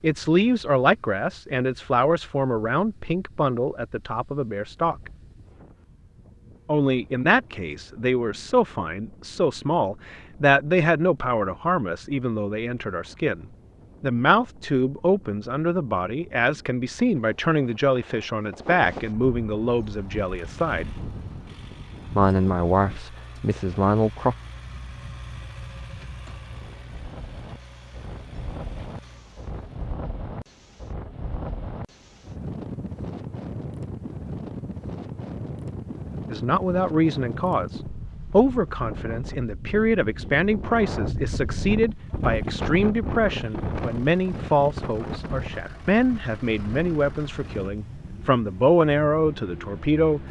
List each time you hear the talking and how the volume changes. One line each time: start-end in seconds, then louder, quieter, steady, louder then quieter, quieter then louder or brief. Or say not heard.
0.0-5.1 quieter
6.7-20.9 steady
22.1-24.4 brief
36.3-50.2 steady.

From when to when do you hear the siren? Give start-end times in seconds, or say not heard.
not heard.